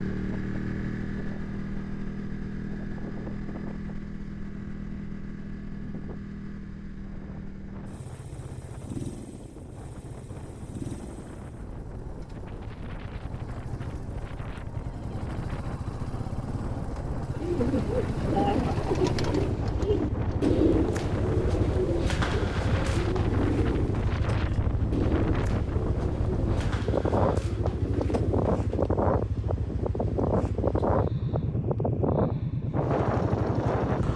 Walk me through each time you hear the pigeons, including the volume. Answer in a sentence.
You can hear the pigeons from 17.3 to 28.9 s, getting quieter.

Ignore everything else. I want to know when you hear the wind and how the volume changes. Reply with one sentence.
You can hear the wind from 0.1 to 34.1 s, getting louder.